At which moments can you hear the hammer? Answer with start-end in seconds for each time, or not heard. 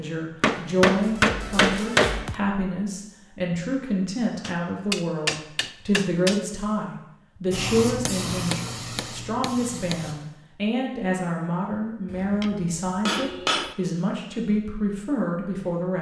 0.4-2.4, 4.4-6.4, 8.1-9.9, 12.1-13.8.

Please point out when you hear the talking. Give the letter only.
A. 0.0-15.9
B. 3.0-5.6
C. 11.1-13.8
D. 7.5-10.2
A.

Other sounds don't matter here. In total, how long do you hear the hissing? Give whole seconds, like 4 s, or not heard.
3 s.